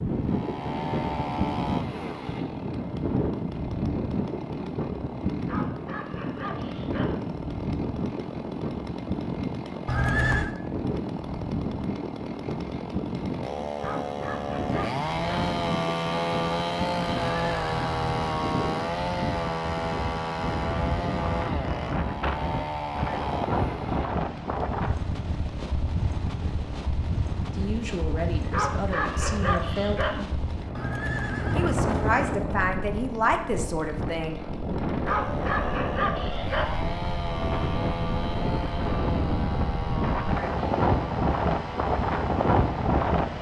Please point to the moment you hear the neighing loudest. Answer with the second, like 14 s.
10 s.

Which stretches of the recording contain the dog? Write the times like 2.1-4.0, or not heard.
5.5-7.2, 13.8-15.5, 28.5-30.2, 35.0-36.8.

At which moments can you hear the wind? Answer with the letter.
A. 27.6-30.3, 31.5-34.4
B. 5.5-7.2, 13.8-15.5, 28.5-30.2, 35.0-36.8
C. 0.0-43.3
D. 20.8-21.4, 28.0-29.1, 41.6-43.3
C.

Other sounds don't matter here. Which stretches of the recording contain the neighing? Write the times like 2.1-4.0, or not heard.
9.8-10.6, 17.1-18.2, 30.8-32.5.